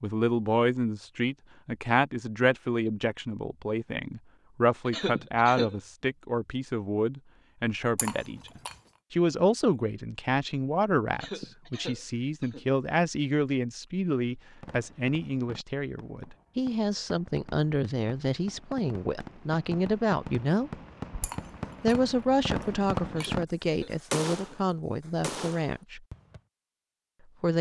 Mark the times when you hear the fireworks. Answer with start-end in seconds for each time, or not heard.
14.4-26.4.